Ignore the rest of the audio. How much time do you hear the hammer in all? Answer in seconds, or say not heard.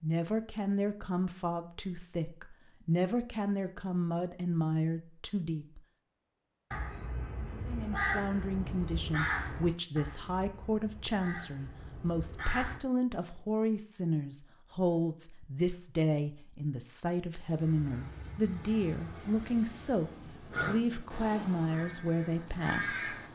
not heard.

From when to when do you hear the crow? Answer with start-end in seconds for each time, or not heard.
6.7-12.8, 20.5-23.3.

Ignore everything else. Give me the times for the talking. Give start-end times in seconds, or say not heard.
0.0-5.8, 7.7-23.3.